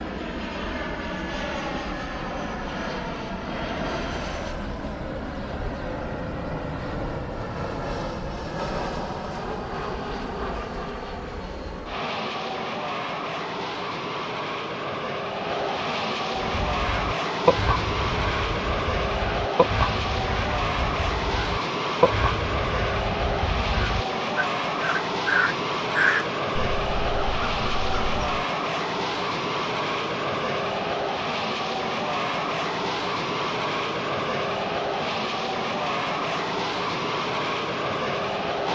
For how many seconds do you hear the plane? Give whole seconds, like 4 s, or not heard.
39 s.